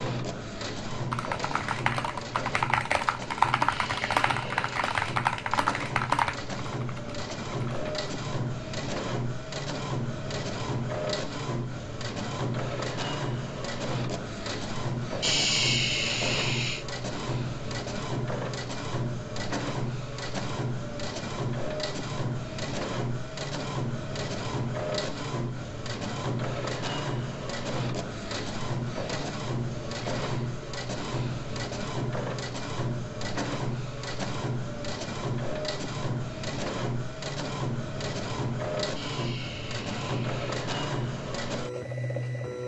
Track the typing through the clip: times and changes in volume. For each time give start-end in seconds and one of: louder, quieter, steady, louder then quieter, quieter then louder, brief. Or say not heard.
0.9-7.8 louder then quieter.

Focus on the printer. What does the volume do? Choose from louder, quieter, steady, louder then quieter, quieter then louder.
steady.